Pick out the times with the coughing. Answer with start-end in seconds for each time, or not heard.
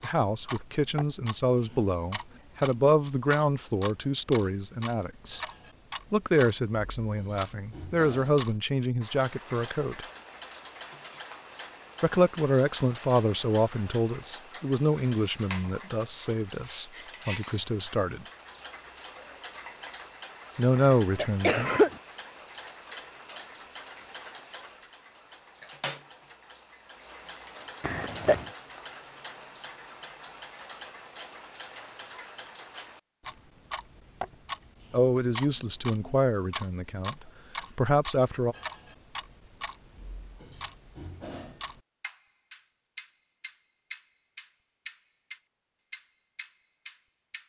20.8-21.9, 27.8-28.5.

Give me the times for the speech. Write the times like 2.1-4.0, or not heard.
0.0-5.4, 6.1-10.1, 12.0-18.2, 20.6-21.8, 34.9-38.5.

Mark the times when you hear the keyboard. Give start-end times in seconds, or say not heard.
not heard.